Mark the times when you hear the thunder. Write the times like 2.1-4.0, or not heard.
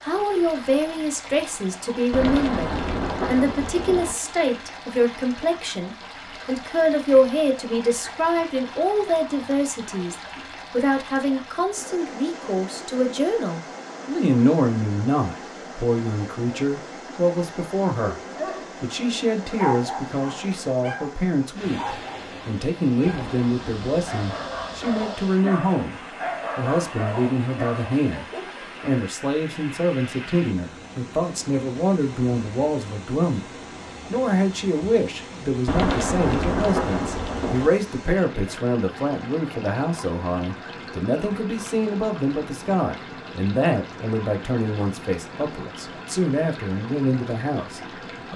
2.1-4.2, 23.1-25.0, 35.6-37.7.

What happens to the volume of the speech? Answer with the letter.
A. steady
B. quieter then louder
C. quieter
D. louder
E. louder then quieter
A.